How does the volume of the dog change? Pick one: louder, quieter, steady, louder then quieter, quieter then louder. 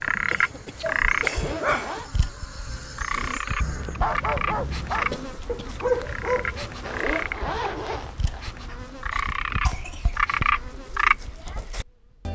quieter then louder.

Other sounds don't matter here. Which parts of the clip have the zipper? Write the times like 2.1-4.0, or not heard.
1.2-2.1, 6.8-8.5.